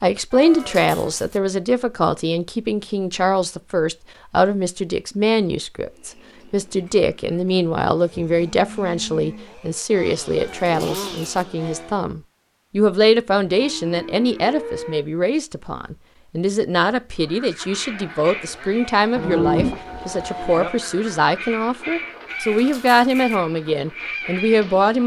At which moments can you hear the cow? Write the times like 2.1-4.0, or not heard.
0.3-1.2, 8.1-9.6, 13.3-15.1, 19.1-20.7.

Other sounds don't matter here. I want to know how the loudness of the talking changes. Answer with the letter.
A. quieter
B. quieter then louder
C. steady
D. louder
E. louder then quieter
C.